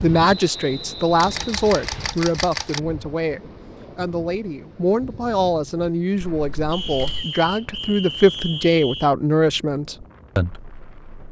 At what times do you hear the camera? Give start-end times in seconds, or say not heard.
1.2-2.8, 6.2-7.2.